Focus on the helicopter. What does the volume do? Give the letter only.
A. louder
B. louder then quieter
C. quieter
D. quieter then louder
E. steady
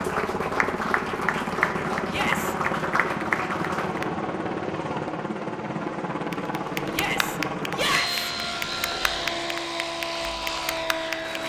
E.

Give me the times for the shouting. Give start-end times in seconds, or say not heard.
2.0-2.5, 6.9-8.3.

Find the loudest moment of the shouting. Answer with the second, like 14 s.
8 s.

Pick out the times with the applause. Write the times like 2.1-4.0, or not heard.
0.0-4.0, 6.3-11.4.